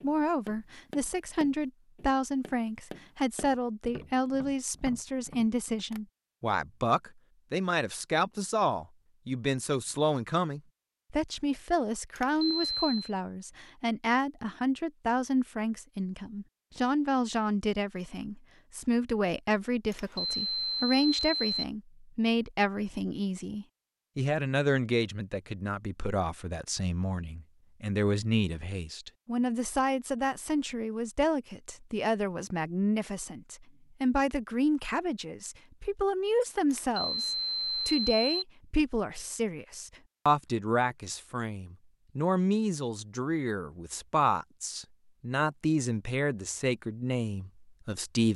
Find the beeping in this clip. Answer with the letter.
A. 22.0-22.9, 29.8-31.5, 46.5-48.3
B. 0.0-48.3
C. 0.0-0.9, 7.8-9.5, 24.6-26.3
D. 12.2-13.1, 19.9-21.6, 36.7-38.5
D.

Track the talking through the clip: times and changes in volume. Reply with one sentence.
The talking can be heard from 0.0 to 48.3 s, at a steady volume.